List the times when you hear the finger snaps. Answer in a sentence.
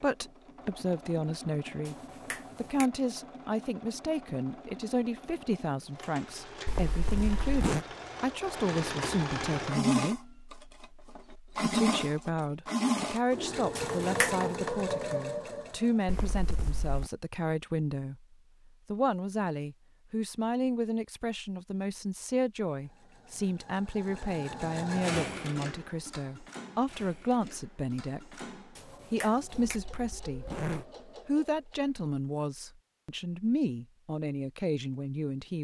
The finger snaps can be heard from 1.9 to 2.9 s, from 13.8 to 14.5 s and from 28.8 to 29.8 s.